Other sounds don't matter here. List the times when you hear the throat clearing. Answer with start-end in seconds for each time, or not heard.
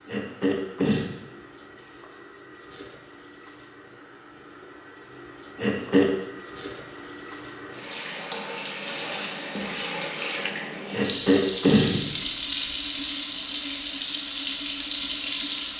0.1-1.1, 5.5-6.0, 10.9-12.0.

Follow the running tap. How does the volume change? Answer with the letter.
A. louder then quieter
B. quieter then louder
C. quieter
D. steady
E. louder
E.